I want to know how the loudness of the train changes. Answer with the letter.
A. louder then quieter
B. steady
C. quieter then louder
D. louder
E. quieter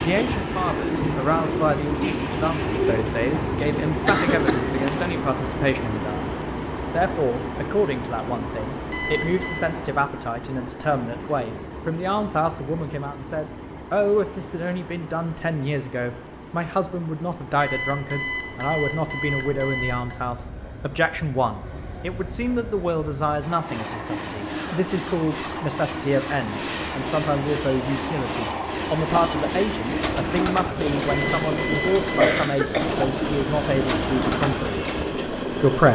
C.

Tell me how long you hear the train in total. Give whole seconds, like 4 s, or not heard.
36 s.